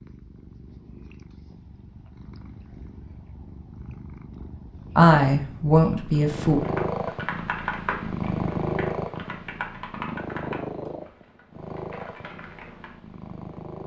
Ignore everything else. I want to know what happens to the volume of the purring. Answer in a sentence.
The volume of the purring goes up, then down.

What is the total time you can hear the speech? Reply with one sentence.
The speech can be heard for 2 seconds in total.